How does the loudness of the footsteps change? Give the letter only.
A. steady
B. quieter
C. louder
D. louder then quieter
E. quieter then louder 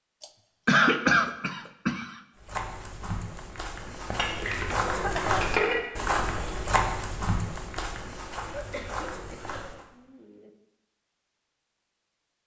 D.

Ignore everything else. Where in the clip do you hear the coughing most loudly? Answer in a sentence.
The volume of the coughing peaks at 1 second.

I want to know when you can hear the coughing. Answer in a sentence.
The coughing can be heard from 0.2 to 2.2 s, from 4.8 to 5.5 s and from 8.5 to 10.5 s.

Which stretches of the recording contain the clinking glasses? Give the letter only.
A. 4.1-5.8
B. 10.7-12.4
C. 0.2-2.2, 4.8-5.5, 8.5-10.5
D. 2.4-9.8
A.